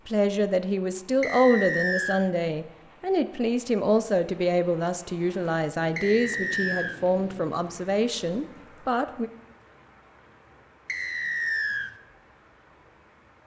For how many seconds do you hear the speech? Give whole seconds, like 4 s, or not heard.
9 s.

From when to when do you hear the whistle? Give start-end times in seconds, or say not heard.
1.2-2.2, 6.0-7.0, 10.8-11.9.